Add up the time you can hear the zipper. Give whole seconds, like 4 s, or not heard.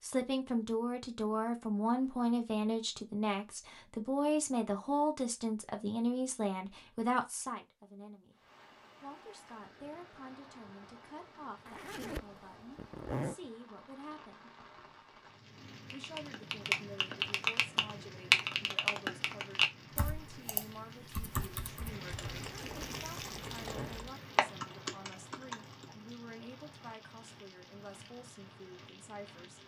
3 s.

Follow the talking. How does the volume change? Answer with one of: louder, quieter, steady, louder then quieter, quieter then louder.
quieter.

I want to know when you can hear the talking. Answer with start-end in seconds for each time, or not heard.
0.0-8.3, 9.0-14.5, 15.9-29.6.